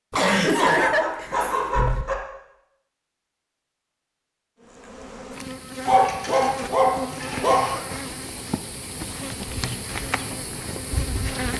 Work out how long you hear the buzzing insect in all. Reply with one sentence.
The buzzing insect can be heard for 7 seconds in total.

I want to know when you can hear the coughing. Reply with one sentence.
You can hear the coughing from 0.1 to 2.0 s and from 7.2 to 8.2 s.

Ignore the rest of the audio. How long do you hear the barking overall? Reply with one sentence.
You can hear the barking for 4 seconds altogether.